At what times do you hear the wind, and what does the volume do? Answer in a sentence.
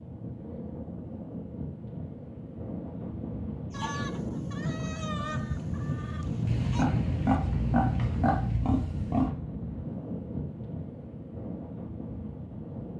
The wind can be heard from 0.0 to 12.9 s, getting louder then quieter.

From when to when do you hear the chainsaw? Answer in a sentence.
The chainsaw can't be heard in this clip.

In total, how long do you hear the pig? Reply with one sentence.
The pig can be heard for 3 seconds in total.